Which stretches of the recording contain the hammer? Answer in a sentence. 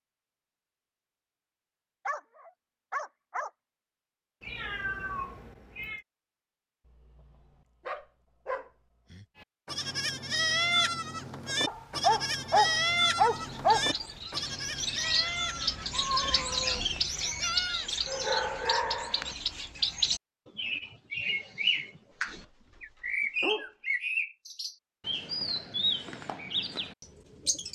The hammer can't be heard in this clip.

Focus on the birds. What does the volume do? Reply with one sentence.
The loudness of the birds stays about the same.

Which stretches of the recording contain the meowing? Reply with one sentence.
The meowing can be heard from 4.4 to 6.0 s and from 15.9 to 16.8 s.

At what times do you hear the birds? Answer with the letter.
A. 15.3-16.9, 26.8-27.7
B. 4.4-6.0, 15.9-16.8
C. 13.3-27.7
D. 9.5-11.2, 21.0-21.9
C.